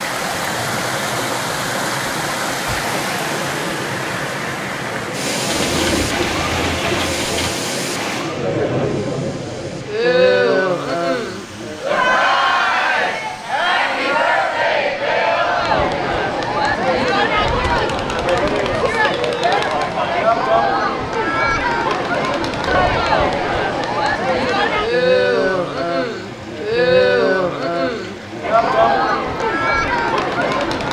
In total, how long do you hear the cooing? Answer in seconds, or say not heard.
2 s.